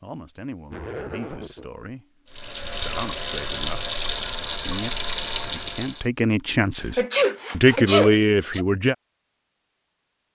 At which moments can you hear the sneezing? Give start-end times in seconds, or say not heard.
7.0-8.7.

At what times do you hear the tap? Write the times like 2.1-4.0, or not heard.
2.3-6.0.